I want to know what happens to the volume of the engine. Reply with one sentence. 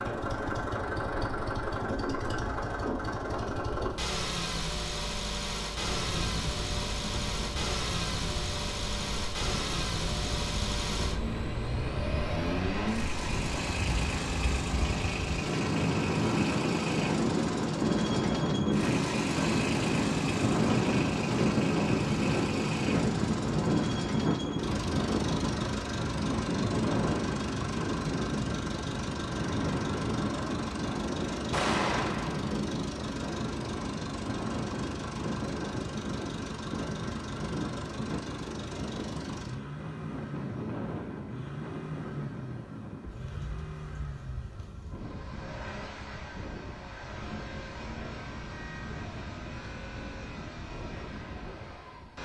The loudness of the engine goes down.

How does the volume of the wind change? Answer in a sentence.
The volume of the wind goes up, then down.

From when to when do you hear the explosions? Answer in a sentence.
The explosions can be heard from 31.5 to 32.5 s.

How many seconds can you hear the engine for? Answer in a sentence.
You can hear the engine for 52 seconds altogether.